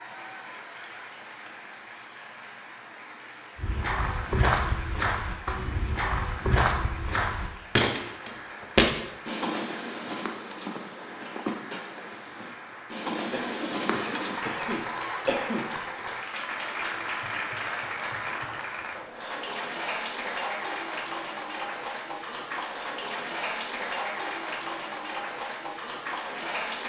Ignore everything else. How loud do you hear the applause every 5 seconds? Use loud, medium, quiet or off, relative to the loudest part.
medium, medium, medium, loud, loud, loud.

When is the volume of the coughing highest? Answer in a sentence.
The loudest moment of the coughing is at 15 seconds.